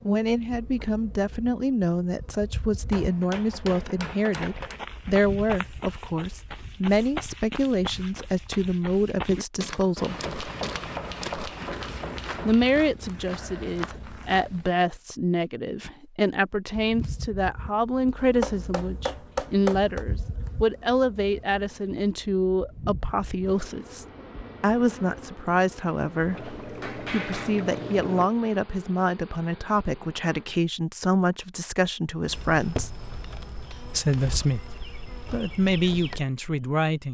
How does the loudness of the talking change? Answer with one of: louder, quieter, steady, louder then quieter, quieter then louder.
steady.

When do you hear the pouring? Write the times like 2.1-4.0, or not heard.
26.3-28.3.